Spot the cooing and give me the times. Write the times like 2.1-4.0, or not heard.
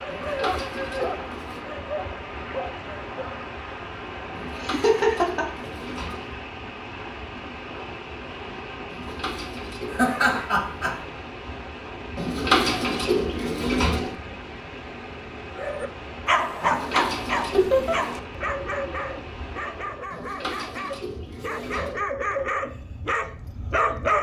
0.1-1.6, 4.3-6.3, 8.8-10.4, 12.2-14.2, 16.6-18.2, 20.1-22.1.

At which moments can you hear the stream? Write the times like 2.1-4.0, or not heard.
0.0-20.2.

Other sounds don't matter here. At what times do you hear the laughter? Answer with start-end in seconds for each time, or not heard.
4.5-5.5, 9.9-11.0, 17.5-17.9.